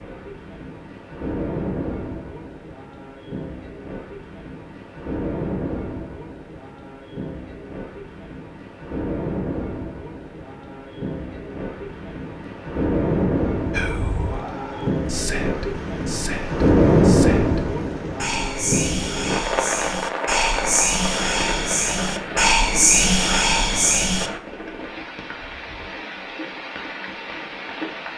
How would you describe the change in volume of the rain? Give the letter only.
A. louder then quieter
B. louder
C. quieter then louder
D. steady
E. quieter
A.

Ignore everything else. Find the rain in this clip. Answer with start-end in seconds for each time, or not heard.
0.0-28.1.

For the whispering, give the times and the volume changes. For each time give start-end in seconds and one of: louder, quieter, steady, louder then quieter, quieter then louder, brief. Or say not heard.
13.7-24.3 louder.